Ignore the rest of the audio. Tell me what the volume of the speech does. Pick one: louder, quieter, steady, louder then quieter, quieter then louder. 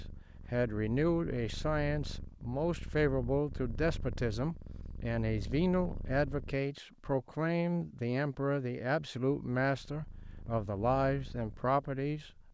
steady.